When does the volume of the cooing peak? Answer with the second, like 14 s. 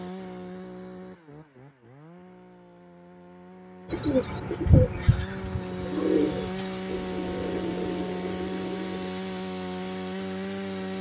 5 s.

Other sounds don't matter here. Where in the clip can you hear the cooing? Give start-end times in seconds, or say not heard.
3.9-9.1.